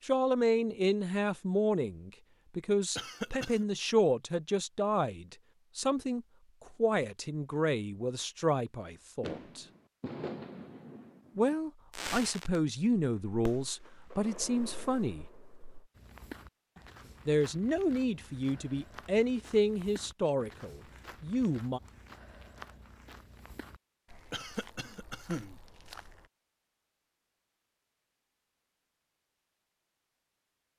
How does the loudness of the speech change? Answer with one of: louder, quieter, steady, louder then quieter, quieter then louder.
steady.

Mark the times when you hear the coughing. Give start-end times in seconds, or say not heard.
3.0-3.6, 24.3-25.6.